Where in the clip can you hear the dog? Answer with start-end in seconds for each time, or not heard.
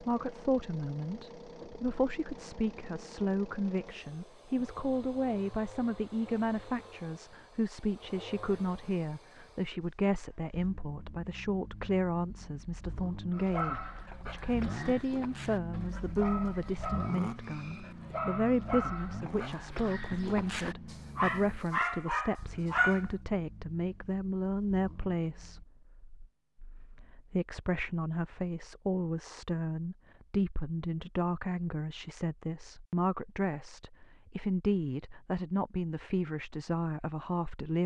13.3-23.1.